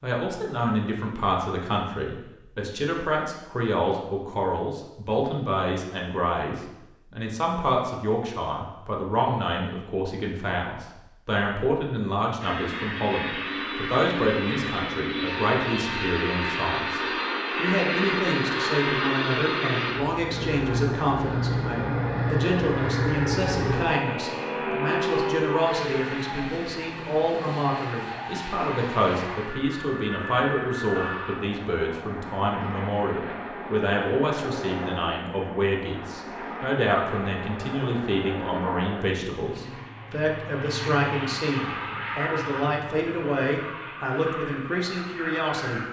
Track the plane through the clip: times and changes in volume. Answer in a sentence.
The plane can be heard from 12.4 to 45.8 s, getting quieter.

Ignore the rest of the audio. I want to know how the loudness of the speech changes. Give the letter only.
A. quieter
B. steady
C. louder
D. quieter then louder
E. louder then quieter
B.